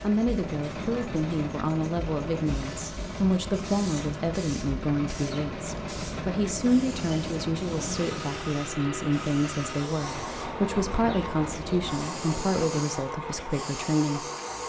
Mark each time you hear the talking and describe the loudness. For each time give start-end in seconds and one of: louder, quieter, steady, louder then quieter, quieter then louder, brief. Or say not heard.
0.0-14.2 steady.